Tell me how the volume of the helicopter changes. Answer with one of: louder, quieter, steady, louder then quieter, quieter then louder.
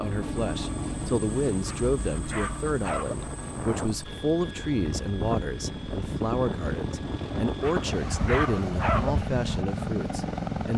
quieter then louder.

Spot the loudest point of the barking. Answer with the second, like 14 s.
9 s.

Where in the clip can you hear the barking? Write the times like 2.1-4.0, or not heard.
1.6-3.1, 7.6-9.2.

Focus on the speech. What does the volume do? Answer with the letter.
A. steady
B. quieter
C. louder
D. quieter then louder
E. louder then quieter
A.